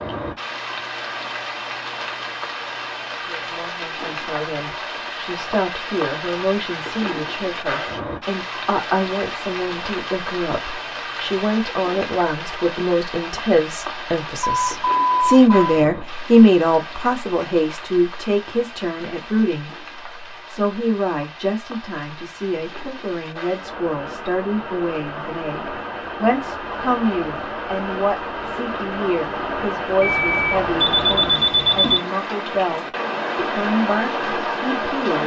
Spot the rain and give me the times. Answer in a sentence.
You can hear the rain from 0.0 to 35.2 s.